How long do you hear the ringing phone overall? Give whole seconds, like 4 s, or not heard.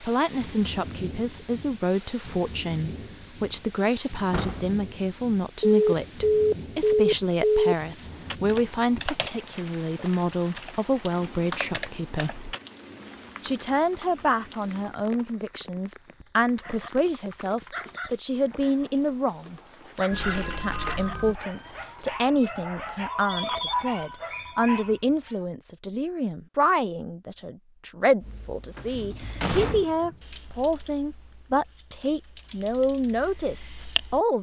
5 s.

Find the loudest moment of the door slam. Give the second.
30 s.